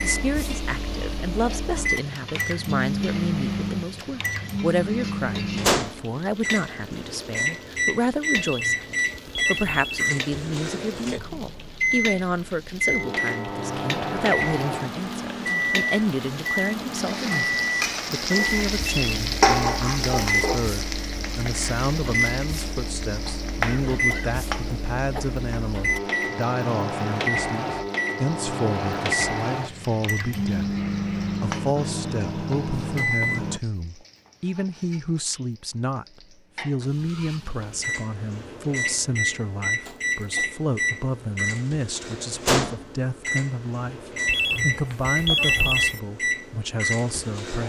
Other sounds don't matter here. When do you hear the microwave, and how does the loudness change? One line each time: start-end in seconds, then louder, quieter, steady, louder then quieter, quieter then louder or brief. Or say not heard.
0.0-33.6 steady
37.5-47.6 steady.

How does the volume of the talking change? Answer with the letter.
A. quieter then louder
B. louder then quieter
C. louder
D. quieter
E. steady
E.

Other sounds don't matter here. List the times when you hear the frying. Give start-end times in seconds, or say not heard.
0.0-38.0.